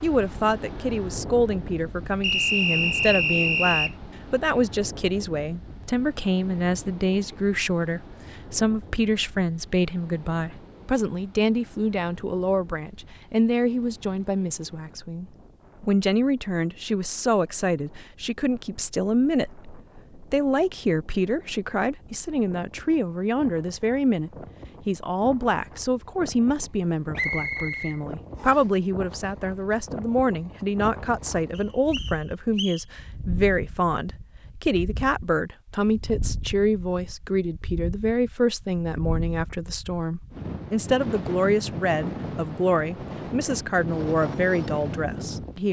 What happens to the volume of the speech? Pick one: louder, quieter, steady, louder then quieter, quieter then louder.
steady.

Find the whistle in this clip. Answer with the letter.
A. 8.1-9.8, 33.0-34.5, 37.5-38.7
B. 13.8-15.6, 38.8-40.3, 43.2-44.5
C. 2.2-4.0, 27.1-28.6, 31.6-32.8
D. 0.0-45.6
C.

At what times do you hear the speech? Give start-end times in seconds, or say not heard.
0.0-45.6.